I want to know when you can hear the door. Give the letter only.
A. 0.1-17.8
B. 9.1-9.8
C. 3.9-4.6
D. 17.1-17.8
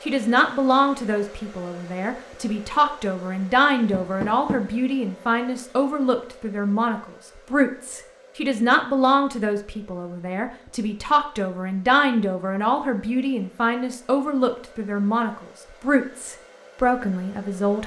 C.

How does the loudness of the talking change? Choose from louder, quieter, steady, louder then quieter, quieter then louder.
steady.